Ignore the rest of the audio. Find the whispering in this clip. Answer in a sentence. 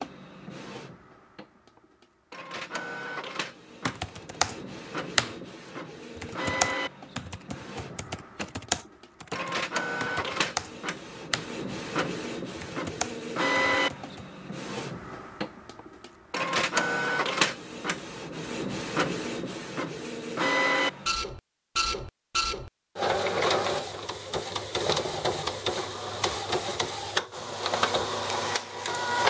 You can't hear the whispering here.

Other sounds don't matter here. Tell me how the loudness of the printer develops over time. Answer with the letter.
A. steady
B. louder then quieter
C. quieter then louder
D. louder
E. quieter
D.